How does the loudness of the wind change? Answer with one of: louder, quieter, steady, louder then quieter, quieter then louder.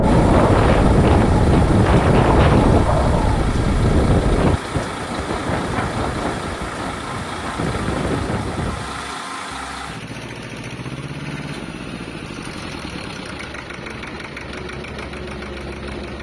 quieter.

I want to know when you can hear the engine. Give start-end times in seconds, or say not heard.
0.0-16.1.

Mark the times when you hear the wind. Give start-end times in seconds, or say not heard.
0.0-9.1.